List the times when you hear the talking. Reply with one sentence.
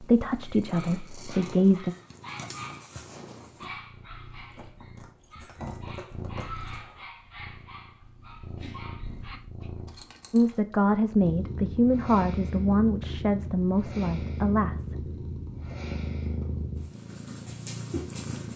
You can hear the talking from 0.0 to 1.9 s and from 10.3 to 14.9 s.